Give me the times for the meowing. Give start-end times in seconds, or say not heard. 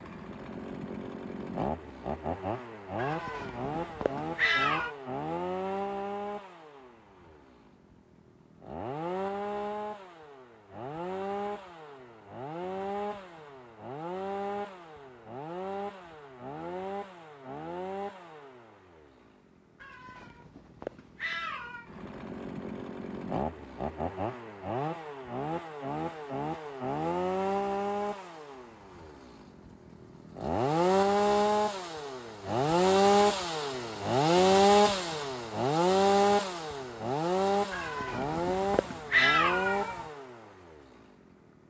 3.0-5.0, 19.8-21.9, 37.7-40.0.